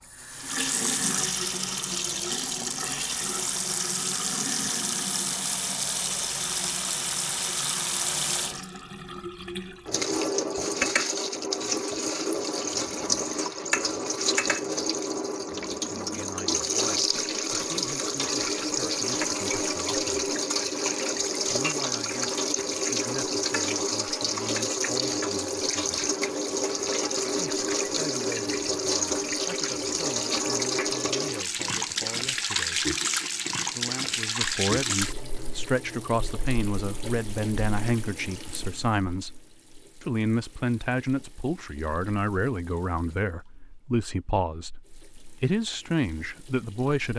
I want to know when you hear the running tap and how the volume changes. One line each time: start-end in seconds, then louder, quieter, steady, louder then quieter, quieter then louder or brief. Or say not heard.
0.0-47.1 quieter.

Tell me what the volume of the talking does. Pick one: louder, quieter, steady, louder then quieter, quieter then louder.
louder.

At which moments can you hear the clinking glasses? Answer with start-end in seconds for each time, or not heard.
not heard.